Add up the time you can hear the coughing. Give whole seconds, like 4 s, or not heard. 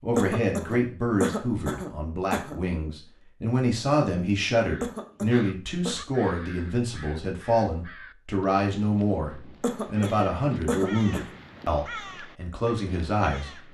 5 s.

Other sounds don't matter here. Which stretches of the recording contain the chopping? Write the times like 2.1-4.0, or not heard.
not heard.